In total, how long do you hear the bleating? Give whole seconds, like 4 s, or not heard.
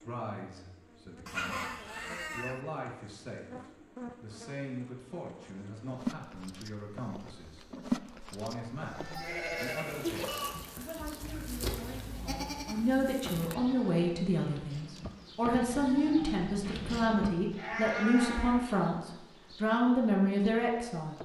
10 s.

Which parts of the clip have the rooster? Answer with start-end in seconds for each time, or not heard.
1.2-2.6.